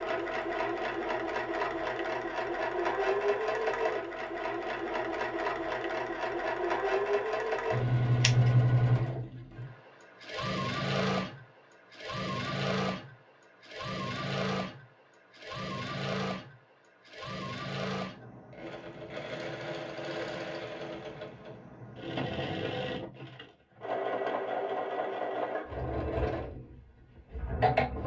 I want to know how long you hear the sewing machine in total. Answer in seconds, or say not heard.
28 s.